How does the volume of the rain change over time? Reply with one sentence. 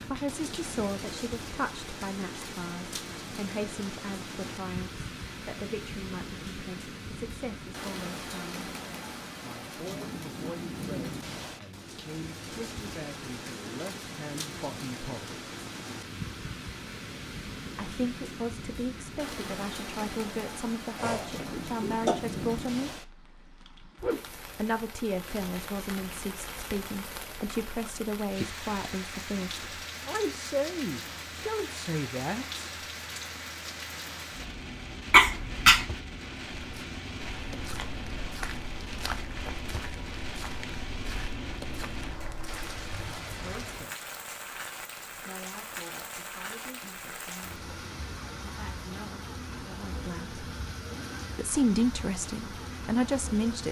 The loudness of the rain stays about the same.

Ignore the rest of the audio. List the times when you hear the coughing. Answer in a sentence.
The coughing can be heard from 20.9 to 22.1 s and from 35.1 to 35.9 s.